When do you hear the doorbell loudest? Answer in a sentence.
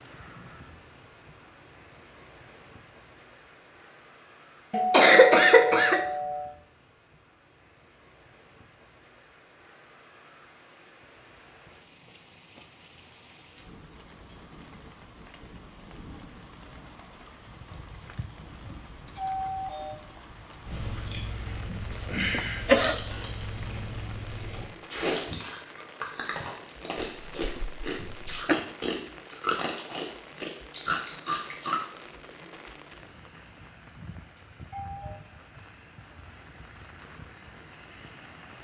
The volume of the doorbell peaks at 5 seconds.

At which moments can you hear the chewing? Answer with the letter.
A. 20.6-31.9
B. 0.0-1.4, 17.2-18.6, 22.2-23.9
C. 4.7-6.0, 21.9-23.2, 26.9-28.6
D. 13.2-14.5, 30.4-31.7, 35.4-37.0
A.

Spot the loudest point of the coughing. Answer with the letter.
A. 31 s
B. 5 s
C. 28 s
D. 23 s
B.